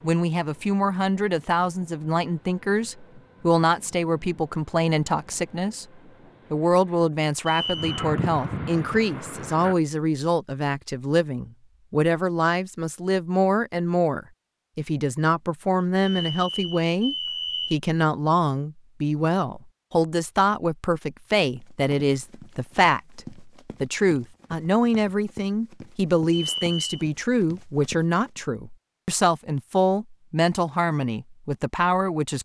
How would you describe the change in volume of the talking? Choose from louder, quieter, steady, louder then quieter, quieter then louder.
steady.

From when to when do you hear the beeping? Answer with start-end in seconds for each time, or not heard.
7.5-8.0, 16.0-17.8, 26.3-27.1.